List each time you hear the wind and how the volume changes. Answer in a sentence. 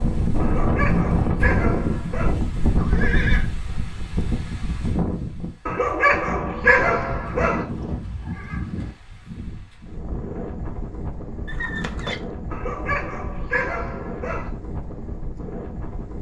You can hear the wind from 0.0 to 16.1 s, getting quieter.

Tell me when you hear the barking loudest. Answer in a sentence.
The loudest moment of the barking is at 7 seconds.